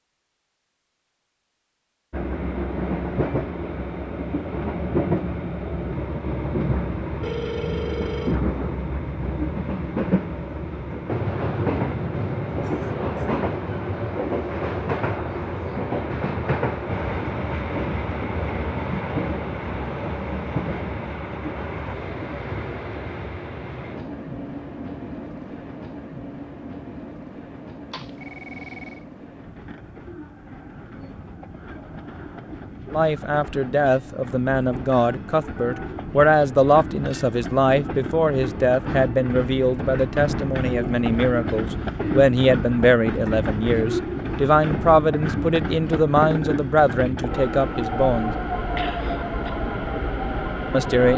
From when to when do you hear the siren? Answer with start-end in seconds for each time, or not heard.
not heard.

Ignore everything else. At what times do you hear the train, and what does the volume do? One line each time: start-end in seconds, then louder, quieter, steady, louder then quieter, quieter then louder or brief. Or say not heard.
2.1-51.1 quieter then louder.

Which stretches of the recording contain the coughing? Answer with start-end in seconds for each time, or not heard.
12.6-13.4, 48.8-49.5.